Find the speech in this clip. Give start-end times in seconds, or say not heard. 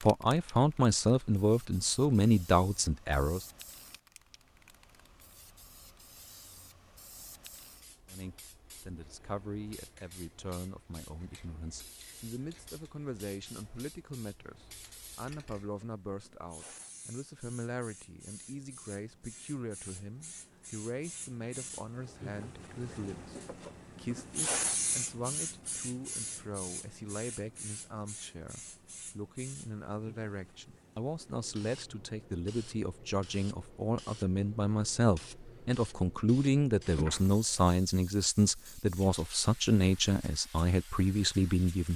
0.0-3.5, 8.1-41.9.